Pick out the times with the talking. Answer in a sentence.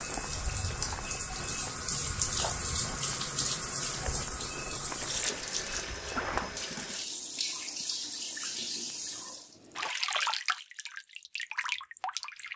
The talking can't be heard in this clip.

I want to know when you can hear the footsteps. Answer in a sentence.
The footsteps can be heard from 0.0 to 6.7 s.